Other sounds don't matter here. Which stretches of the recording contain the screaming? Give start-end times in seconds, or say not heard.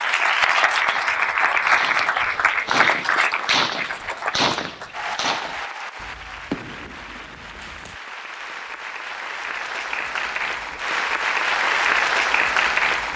not heard.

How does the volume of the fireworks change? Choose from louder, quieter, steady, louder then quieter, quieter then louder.
louder then quieter.